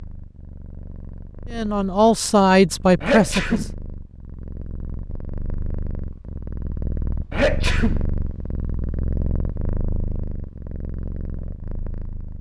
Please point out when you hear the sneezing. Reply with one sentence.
The sneezing can be heard from 3.0 to 3.7 s and from 7.3 to 8.1 s.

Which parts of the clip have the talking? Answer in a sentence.
You can hear the talking from 1.5 to 3.6 s.